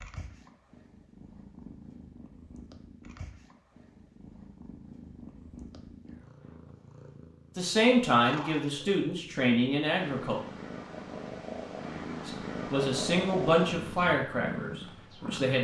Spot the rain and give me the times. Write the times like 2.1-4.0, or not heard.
not heard.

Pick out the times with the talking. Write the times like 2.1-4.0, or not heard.
7.5-10.4, 12.2-15.5.